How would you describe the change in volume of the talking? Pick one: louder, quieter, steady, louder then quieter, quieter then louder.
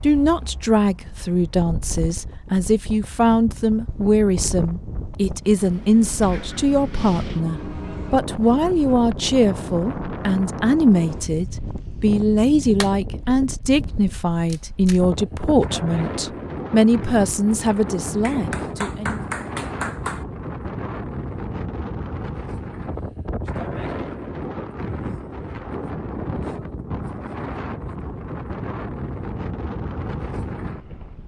steady.